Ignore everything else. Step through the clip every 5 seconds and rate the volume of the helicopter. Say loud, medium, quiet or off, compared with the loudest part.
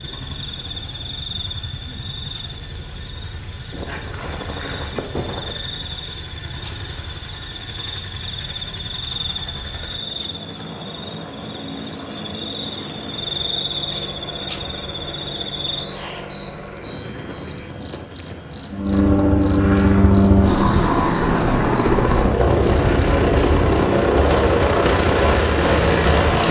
quiet, quiet, quiet, medium, loud, loud.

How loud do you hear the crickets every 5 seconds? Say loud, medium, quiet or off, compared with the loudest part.
quiet, medium, medium, loud, loud, loud.